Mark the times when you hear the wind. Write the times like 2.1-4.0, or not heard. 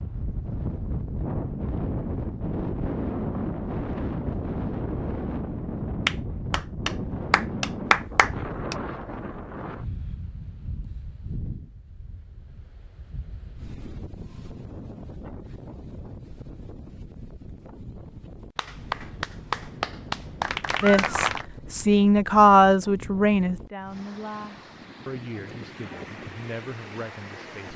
0.0-27.7.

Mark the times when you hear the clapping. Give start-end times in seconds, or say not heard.
6.0-8.8, 18.6-21.4.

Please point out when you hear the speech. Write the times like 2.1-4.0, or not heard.
20.8-27.7.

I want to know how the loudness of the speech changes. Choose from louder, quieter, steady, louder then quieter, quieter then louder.
quieter.